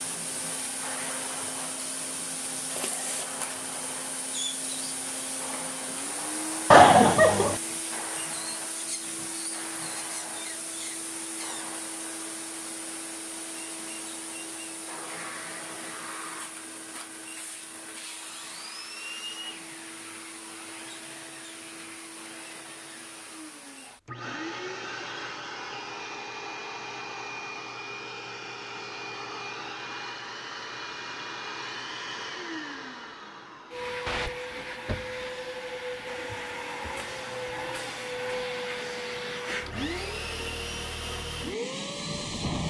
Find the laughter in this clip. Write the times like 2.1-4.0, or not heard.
6.7-7.6.